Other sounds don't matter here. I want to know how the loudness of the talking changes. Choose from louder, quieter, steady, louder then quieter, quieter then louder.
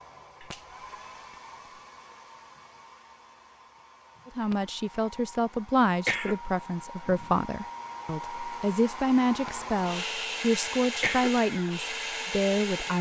steady.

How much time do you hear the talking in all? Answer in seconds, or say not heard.
9 s.